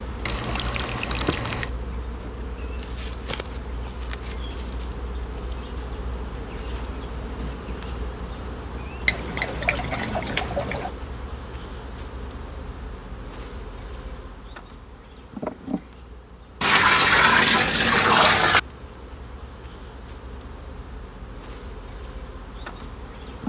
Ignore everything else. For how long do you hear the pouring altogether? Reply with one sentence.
You can hear the pouring for 5 seconds altogether.